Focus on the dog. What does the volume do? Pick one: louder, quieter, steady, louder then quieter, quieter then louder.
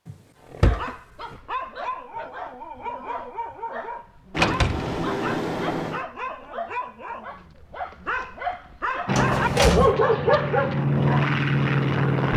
louder.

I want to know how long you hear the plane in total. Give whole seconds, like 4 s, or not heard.
3 s.